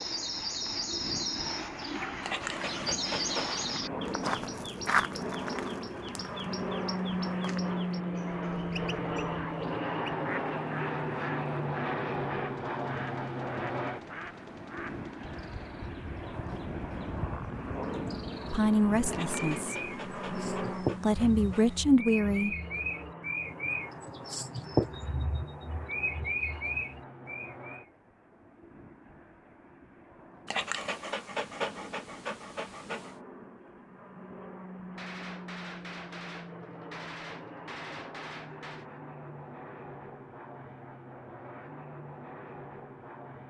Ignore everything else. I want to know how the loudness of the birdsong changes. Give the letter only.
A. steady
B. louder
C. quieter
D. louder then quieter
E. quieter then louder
E.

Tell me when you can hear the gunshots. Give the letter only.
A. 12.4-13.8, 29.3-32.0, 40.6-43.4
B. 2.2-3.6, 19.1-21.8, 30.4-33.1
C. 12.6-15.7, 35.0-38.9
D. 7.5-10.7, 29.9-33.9
C.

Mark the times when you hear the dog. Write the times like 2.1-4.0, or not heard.
2.2-3.6, 19.1-21.8, 30.4-33.1.